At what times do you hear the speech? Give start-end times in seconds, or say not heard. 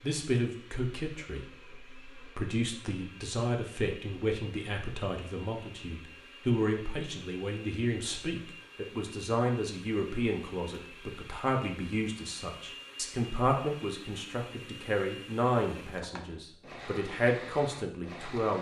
0.0-18.5.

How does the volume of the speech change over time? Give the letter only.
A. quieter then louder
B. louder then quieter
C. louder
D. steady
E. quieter
D.